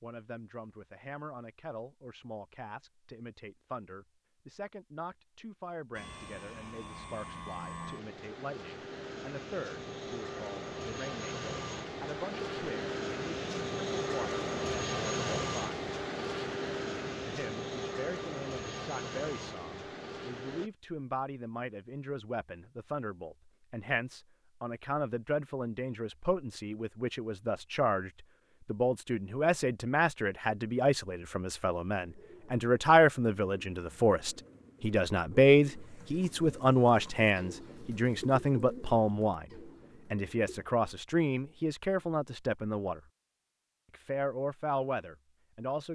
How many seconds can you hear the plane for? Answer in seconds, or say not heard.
15 s.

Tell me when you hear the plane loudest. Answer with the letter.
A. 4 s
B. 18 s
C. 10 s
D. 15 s
D.